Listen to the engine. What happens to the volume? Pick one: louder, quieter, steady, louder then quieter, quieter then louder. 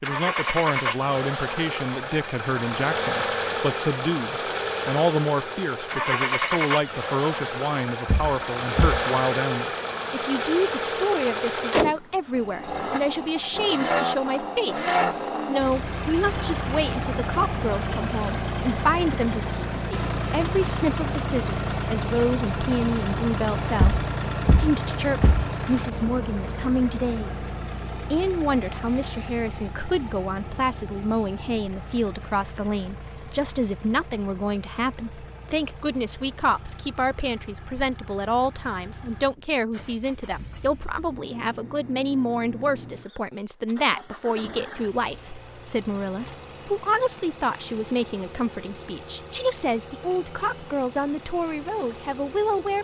quieter.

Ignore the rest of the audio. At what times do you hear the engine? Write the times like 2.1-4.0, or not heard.
0.0-52.7.